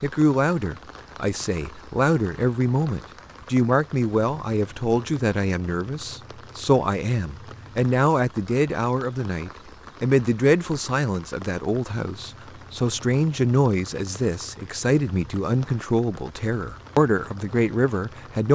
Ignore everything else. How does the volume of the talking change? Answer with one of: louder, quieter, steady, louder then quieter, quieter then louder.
steady.